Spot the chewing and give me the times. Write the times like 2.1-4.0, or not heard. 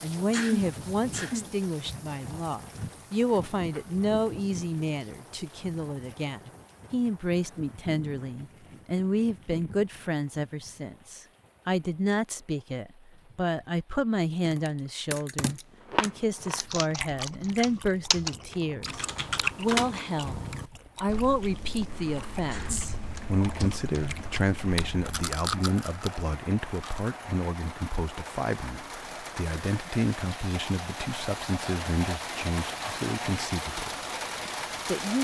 15.8-27.1.